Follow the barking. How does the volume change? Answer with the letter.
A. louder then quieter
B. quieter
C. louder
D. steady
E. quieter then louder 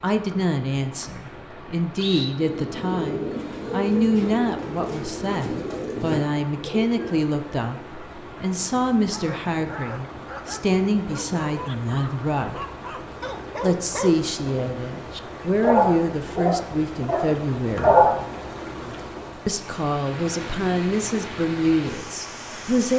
C.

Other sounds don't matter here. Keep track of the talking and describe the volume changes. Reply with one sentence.
The loudness of the talking stays about the same.